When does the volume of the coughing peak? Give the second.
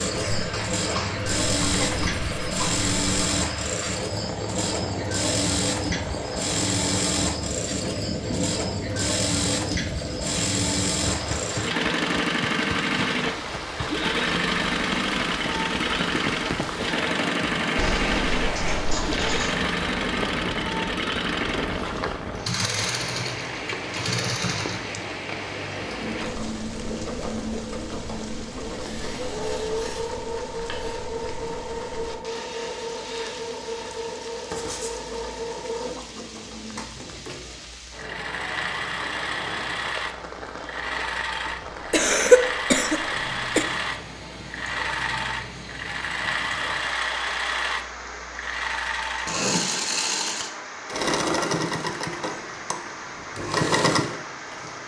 42 s.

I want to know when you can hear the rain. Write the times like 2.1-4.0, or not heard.
0.0-54.8.